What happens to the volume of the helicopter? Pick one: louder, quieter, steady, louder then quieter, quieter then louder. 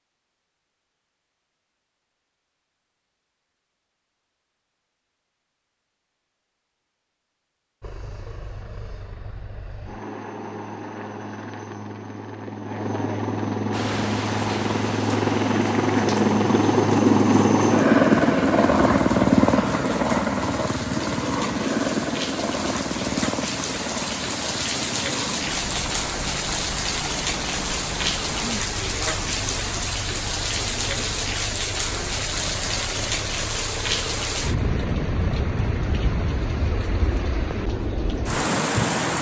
louder then quieter.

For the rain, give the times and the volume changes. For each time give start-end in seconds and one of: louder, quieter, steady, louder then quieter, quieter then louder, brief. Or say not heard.
13.7-39.1 louder.